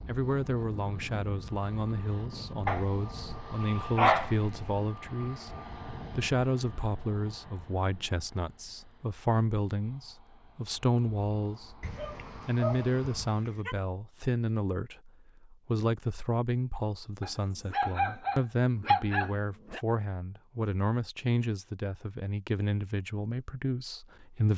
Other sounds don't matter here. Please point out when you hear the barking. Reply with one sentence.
You can hear the barking from 2.6 to 4.5 s, from 11.8 to 13.8 s and from 17.2 to 19.8 s.